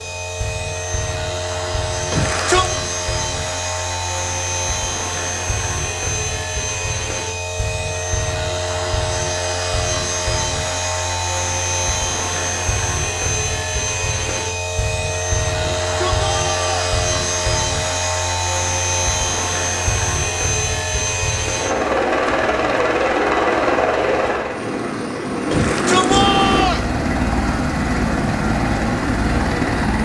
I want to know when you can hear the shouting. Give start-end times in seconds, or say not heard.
2.1-2.8, 15.6-16.8, 25.5-26.9.